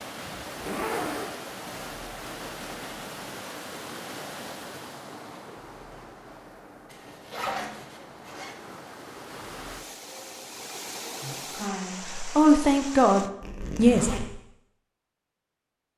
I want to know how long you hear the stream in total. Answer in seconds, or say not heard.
13 s.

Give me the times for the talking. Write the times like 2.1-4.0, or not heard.
11.2-14.1.